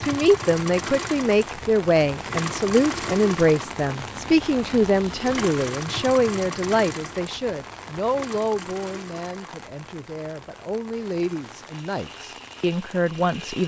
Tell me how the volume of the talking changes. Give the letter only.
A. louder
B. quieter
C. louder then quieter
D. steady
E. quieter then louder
B.